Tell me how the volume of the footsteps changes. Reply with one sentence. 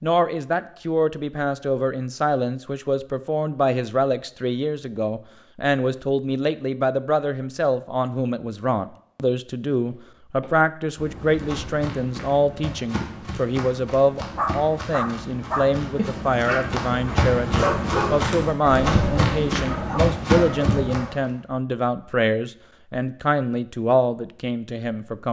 The volume of the footsteps goes up.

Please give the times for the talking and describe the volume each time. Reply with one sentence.
You can hear the talking from 0.0 to 25.2 s, at a steady volume.